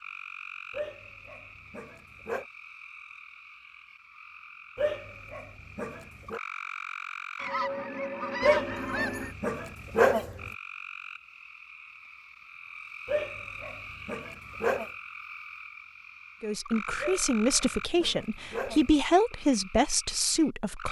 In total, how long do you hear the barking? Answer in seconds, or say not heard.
9 s.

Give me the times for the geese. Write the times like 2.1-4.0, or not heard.
7.3-9.3.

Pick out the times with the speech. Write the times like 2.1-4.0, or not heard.
16.4-20.8.